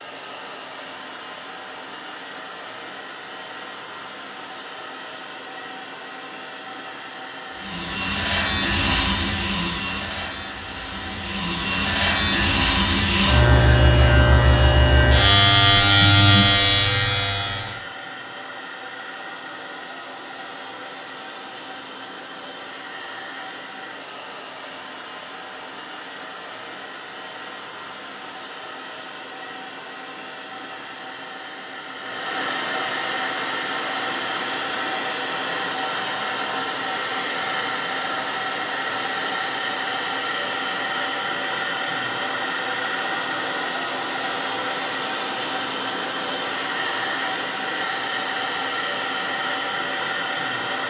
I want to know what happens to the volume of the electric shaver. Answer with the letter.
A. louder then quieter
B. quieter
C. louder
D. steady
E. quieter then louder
E.